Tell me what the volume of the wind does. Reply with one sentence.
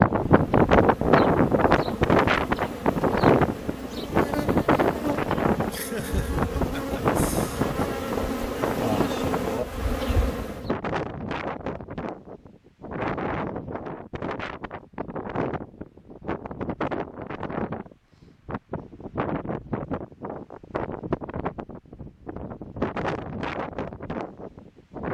The volume of the wind goes down.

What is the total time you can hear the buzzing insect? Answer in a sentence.
The buzzing insect can be heard for 11 seconds in total.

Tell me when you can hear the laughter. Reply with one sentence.
You can hear the laughter from 5.7 to 7.7 s.